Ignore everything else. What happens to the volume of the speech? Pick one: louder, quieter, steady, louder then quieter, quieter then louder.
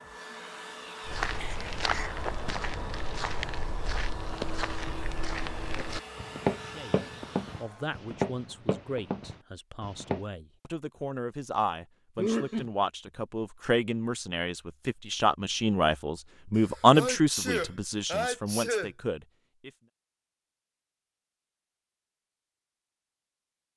louder.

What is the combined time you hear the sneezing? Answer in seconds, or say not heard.
4 s.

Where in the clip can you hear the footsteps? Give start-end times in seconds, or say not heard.
1.1-10.2.